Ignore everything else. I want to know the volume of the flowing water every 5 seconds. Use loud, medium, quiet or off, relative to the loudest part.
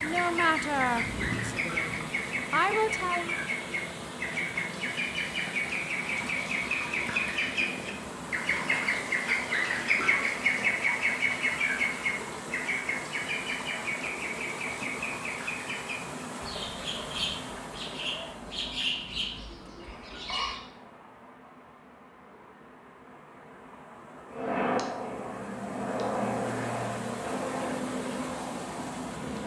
loud, loud, loud, loud, medium, loud.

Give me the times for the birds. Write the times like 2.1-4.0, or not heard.
0.0-20.6.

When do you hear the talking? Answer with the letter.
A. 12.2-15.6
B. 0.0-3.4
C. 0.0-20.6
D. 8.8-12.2
B.